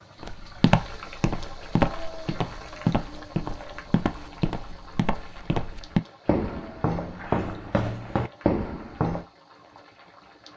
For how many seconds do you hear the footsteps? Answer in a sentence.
You can hear the footsteps for 9 seconds altogether.